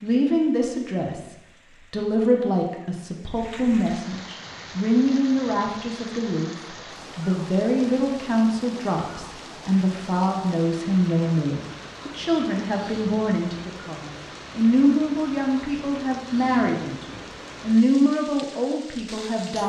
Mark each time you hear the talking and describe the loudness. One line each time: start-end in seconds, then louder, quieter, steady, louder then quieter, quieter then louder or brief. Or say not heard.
0.0-19.6 steady.